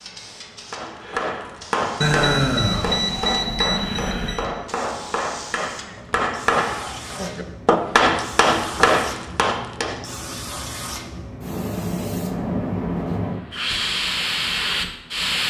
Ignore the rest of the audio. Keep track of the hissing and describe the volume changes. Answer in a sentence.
The volume of the hissing goes up.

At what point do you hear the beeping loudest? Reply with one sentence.
The loudest moment of the beeping is at 2 seconds.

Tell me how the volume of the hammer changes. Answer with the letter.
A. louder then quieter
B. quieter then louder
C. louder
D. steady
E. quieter
C.